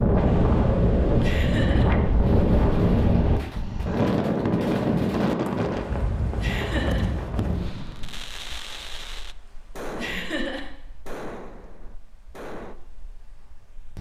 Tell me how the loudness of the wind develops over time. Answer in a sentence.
The loudness of the wind goes down.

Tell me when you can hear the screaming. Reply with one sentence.
You can't hear the screaming here.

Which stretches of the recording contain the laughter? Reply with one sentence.
The laughter can be heard from 1.2 to 1.9 s, from 6.4 to 7.0 s and from 9.9 to 10.7 s.